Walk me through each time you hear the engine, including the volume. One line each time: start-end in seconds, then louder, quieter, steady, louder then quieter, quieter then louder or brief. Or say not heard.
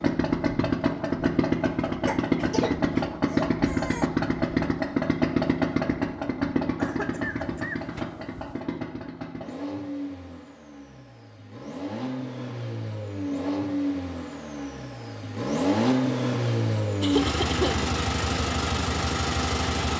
0.0-19.9 quieter then louder.